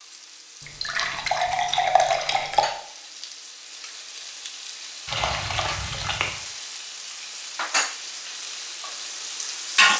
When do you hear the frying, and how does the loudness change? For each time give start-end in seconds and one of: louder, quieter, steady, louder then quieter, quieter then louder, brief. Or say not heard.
0.0-9.9 louder.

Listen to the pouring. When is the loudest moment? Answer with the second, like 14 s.
2 s.